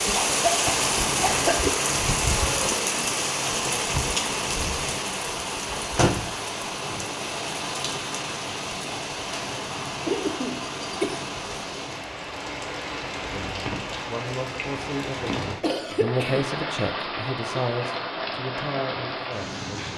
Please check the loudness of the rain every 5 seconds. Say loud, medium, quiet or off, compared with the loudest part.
loud, medium, medium, medium.